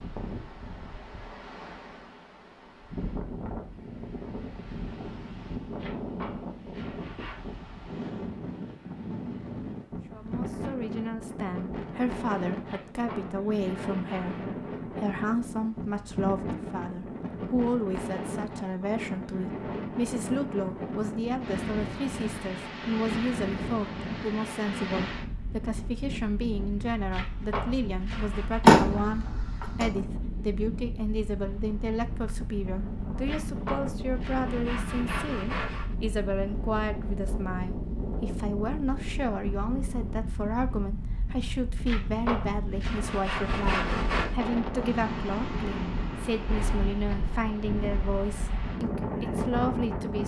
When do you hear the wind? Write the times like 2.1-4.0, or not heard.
0.0-50.2.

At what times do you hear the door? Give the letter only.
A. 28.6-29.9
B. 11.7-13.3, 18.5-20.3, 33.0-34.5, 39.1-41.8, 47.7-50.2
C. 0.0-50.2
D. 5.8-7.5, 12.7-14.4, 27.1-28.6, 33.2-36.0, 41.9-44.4
A.